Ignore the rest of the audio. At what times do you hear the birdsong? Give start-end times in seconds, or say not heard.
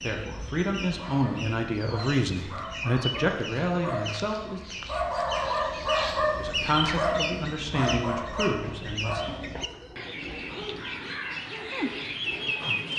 0.0-12.9.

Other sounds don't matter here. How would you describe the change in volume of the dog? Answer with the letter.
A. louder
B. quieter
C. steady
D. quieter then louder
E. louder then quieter
E.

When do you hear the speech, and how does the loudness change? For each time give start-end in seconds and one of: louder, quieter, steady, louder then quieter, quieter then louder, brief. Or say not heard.
0.0-4.6 steady
6.2-9.2 brief.